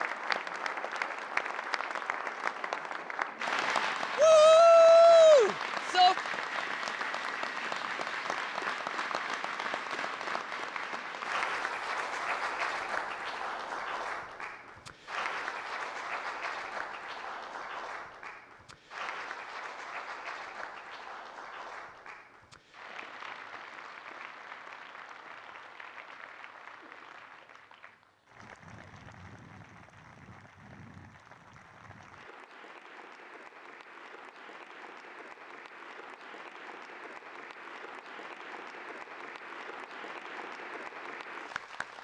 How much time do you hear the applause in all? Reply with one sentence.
You can hear the applause for 42 seconds altogether.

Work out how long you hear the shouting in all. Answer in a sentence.
The shouting can be heard for 2 seconds in total.